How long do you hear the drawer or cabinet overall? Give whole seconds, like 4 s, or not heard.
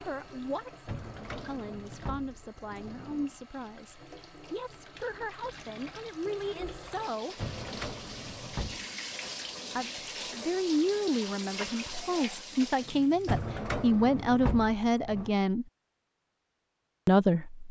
6 s.